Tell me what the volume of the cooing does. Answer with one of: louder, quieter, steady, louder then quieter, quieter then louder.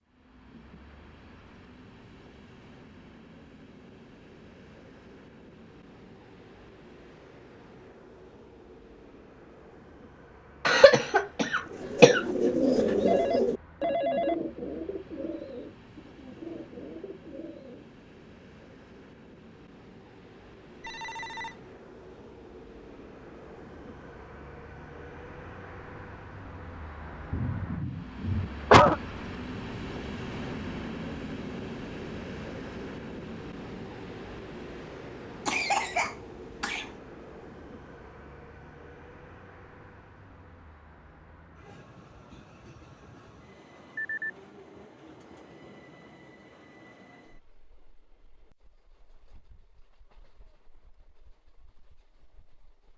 quieter.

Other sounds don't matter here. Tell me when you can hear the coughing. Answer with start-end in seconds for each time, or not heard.
10.7-12.2, 27.3-28.9, 35.5-36.9.